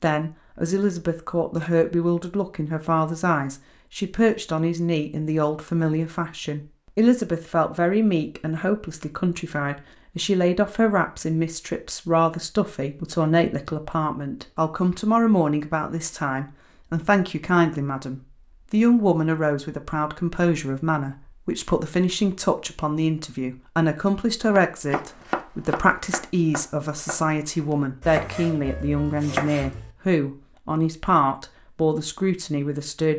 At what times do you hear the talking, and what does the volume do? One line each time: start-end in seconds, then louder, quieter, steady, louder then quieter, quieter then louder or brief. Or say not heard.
0.0-33.1 steady.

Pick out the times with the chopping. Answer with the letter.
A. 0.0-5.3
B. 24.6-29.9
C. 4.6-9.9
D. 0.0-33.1
B.